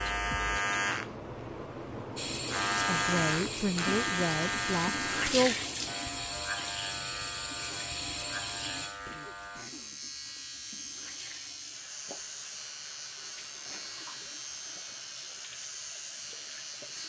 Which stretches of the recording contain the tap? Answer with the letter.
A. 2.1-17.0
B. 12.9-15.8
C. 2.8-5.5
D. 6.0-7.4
A.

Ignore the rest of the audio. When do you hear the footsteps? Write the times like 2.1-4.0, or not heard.
not heard.